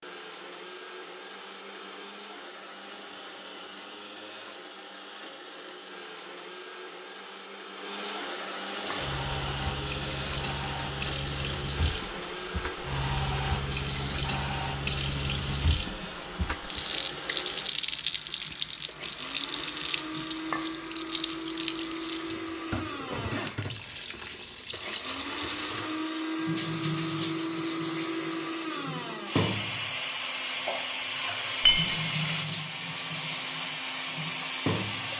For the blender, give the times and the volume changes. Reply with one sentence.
You can hear the blender from 0.0 to 35.1 s, getting louder.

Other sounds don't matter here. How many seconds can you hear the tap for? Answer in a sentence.
The tap can be heard for 26 seconds in total.